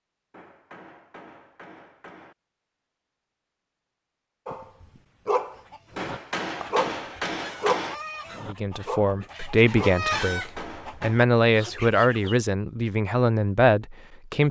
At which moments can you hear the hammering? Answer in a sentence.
The hammering can be heard from 0.3 to 2.4 s, from 6.0 to 8.0 s and from 9.9 to 11.2 s.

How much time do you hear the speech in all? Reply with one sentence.
You can hear the speech for 6 seconds altogether.